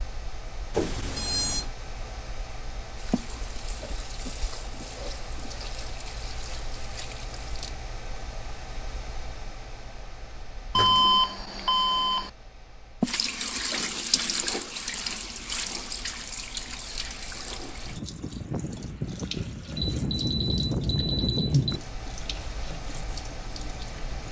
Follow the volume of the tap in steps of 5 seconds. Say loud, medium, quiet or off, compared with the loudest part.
quiet, quiet, loud, medium, quiet.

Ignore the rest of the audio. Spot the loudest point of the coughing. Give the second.
13 s.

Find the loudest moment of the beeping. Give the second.
11 s.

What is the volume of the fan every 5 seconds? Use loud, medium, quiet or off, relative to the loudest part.
medium, medium, quiet, loud, loud.